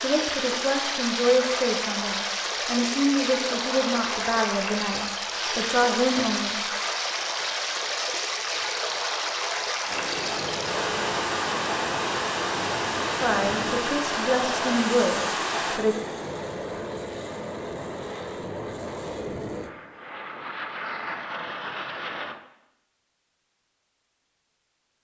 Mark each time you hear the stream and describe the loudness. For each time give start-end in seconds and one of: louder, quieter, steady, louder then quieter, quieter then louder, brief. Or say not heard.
0.0-15.8 steady.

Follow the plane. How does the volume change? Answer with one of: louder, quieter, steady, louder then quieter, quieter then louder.
steady.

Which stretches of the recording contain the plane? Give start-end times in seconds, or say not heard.
9.8-22.4.